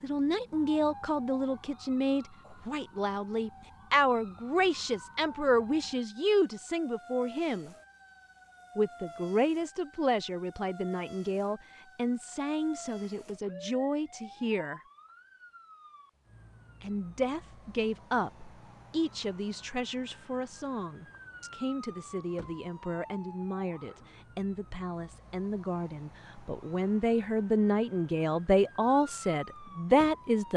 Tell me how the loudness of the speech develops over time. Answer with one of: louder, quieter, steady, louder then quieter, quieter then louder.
quieter then louder.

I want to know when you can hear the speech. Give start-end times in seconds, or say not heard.
0.0-7.7, 8.8-14.8, 16.8-30.5.